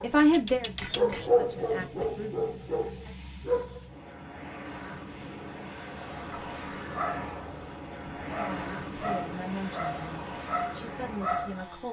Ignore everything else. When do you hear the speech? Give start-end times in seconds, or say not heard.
0.0-3.1, 8.3-11.8.